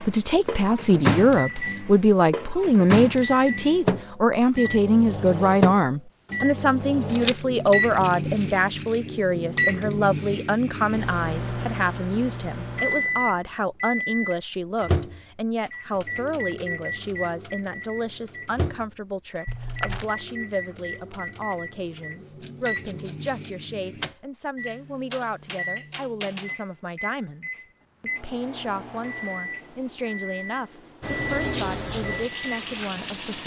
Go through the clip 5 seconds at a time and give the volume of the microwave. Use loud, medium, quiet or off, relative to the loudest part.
loud, loud, loud, medium, medium, medium, medium.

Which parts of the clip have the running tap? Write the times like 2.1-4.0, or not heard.
31.0-33.4.